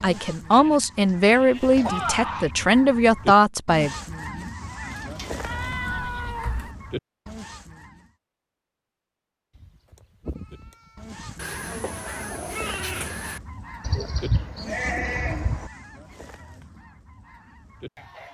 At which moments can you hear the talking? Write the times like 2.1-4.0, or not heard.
0.0-3.9.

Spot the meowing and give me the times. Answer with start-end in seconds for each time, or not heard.
5.4-6.8, 11.3-13.4.